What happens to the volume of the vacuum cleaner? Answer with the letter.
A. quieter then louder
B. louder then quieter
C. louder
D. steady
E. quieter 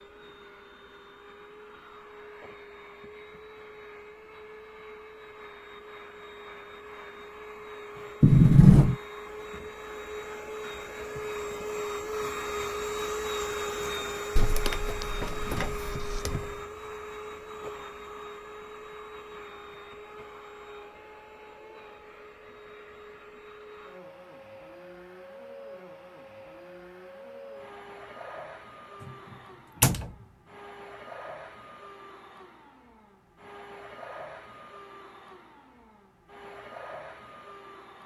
B.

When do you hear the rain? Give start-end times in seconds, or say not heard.
not heard.